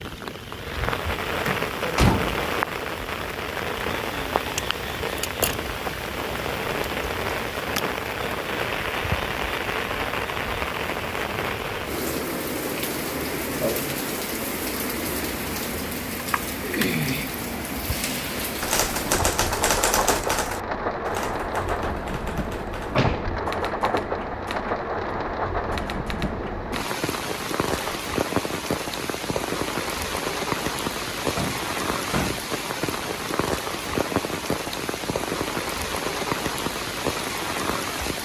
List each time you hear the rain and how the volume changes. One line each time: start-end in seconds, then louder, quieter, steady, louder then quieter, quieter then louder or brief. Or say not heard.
0.0-38.1 steady.